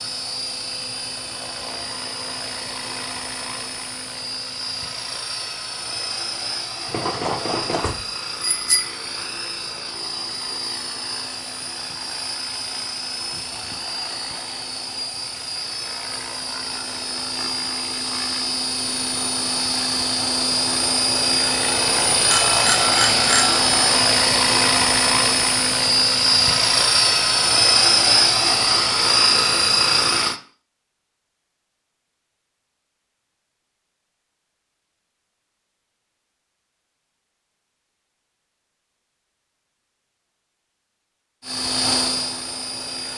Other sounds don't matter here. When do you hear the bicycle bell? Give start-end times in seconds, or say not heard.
6.8-8.9, 22.2-23.6.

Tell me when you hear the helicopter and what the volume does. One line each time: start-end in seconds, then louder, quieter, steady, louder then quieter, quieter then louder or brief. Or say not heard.
0.0-30.4 louder
41.4-43.1 brief.